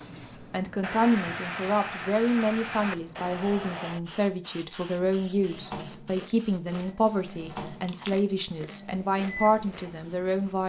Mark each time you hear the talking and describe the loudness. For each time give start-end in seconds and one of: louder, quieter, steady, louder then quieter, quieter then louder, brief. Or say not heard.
0.0-10.6 steady.